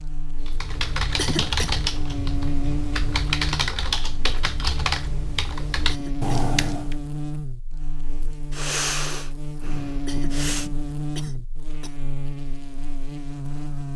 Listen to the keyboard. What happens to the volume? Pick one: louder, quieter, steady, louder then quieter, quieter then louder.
quieter then louder.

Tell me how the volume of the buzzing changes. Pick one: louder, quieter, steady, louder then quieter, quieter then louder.
steady.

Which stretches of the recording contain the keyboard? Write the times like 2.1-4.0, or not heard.
0.4-7.0.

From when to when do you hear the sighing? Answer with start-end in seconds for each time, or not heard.
8.5-10.7.